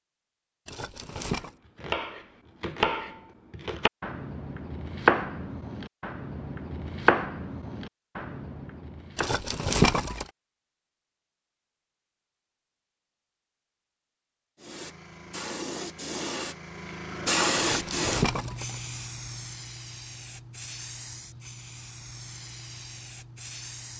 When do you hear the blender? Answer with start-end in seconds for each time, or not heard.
not heard.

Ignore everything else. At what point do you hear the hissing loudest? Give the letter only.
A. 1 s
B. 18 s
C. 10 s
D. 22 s
B.